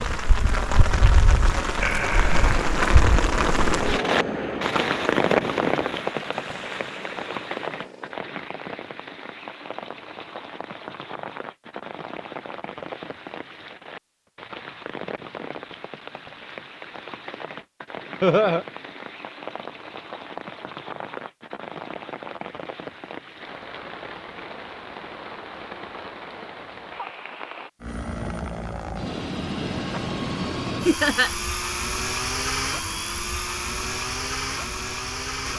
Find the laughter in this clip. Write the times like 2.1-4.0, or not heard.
1.8-2.5, 18.2-18.6, 30.9-31.3.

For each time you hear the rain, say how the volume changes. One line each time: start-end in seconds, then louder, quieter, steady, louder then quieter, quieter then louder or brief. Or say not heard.
0.0-27.7 quieter.